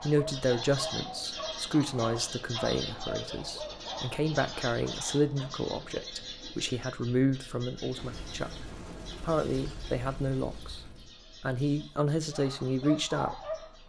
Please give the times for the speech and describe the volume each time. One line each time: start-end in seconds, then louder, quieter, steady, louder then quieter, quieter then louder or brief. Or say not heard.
0.0-13.4 steady.